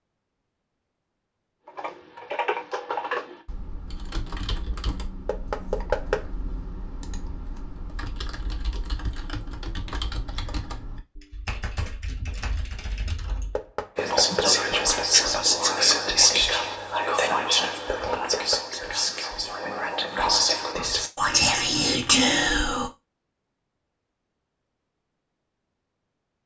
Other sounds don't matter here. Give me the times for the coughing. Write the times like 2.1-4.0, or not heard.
not heard.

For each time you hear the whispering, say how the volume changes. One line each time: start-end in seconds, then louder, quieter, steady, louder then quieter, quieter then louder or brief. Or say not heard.
13.9-22.9 quieter then louder.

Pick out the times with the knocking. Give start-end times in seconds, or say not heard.
5.2-6.2, 13.6-14.6, 17.9-18.6.